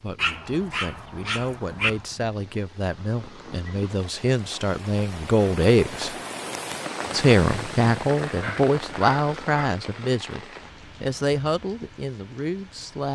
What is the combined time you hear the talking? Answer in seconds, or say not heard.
12 s.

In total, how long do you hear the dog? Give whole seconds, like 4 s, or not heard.
3 s.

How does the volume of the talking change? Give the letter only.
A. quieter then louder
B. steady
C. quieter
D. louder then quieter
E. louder
D.